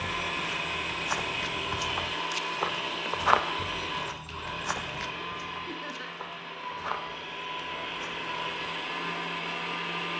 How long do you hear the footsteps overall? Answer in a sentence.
The footsteps can be heard for 9 seconds in total.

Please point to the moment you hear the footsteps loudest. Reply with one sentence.
The volume of the footsteps peaks at 3 seconds.